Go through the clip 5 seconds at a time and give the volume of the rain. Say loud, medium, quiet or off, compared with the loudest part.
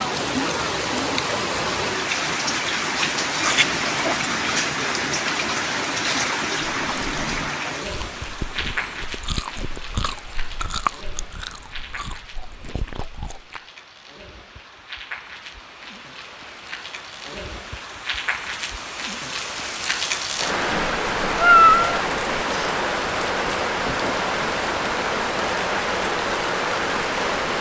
loud, loud, quiet, medium, loud, loud.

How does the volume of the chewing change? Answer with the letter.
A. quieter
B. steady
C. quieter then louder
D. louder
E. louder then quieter
E.